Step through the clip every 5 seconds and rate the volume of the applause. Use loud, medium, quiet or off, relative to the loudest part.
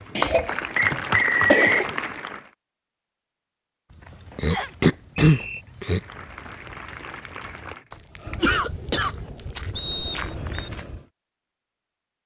loud, quiet, off.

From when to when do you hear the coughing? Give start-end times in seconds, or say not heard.
0.1-1.9, 4.3-6.0, 8.4-9.2.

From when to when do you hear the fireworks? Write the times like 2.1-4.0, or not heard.
not heard.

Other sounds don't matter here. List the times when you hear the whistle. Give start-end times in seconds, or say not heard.
0.8-1.9, 4.5-5.6, 9.8-10.7.